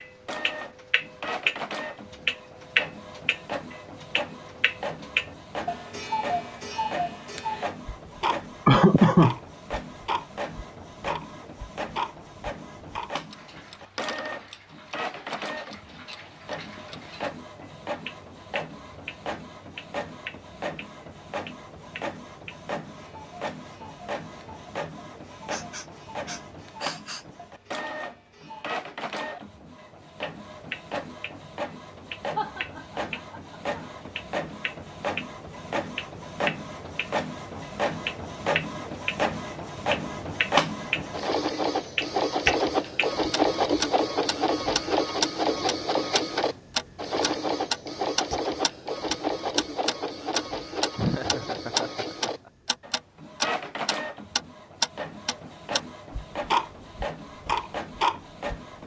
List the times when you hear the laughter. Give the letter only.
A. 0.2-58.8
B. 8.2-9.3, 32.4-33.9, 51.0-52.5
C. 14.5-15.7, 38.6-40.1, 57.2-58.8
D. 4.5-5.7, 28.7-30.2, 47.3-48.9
B.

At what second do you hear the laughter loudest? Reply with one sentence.
The volume of the laughter peaks at 9 seconds.